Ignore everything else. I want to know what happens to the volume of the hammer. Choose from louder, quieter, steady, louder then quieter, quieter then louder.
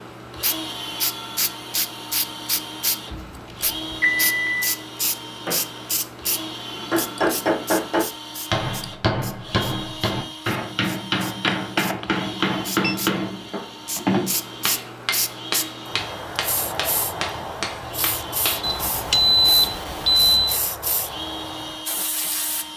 quieter.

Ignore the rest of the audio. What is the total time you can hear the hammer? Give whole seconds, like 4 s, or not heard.
12 s.